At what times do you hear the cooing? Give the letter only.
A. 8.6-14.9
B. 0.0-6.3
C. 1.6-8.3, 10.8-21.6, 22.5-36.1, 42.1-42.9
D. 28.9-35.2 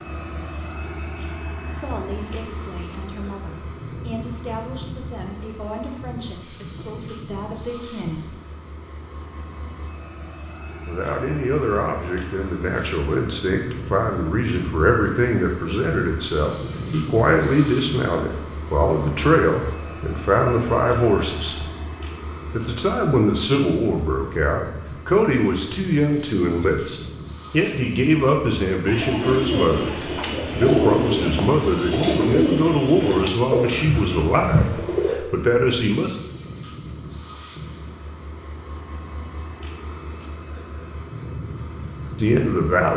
D.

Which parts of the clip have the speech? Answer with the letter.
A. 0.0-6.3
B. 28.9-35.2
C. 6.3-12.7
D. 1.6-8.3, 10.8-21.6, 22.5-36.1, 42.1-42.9
D.